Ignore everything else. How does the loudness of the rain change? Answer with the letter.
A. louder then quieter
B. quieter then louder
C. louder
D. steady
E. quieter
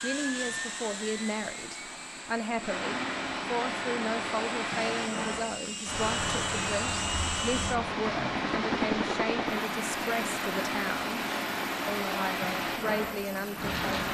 C.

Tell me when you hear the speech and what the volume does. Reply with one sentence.
The speech can be heard from 0.0 to 11.2 s, at a steady volume; and briefly from 11.8 to 14.0 s.